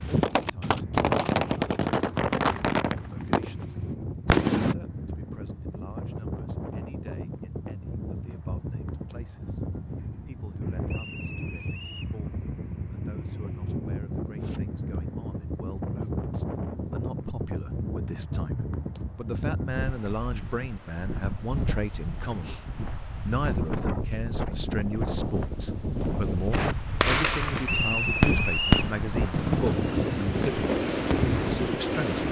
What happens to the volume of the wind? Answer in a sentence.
The loudness of the wind goes up.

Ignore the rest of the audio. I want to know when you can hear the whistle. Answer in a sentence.
You can hear the whistle from 10.8 to 12.2 s and from 27.6 to 28.9 s.